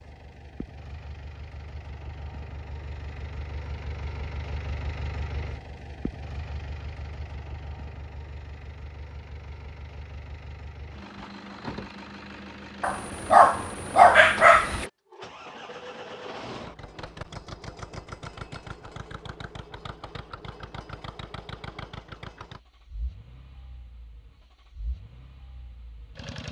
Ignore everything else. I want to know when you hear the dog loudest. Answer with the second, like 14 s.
14 s.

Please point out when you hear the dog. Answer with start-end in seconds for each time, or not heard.
12.8-14.8.